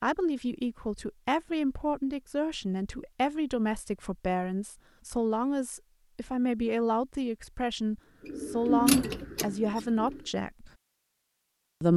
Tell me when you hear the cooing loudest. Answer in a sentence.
The volume of the cooing peaks at 9 seconds.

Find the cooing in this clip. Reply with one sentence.
The cooing can be heard from 8.2 to 10.3 s.